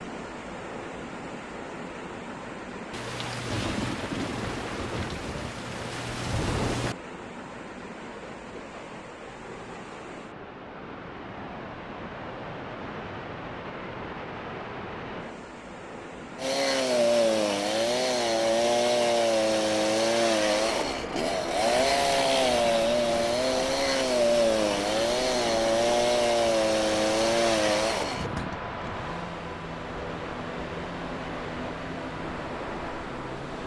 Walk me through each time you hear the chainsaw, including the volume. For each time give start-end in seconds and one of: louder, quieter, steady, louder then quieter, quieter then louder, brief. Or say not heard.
16.4-33.6 quieter.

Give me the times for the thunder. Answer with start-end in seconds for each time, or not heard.
2.9-7.0.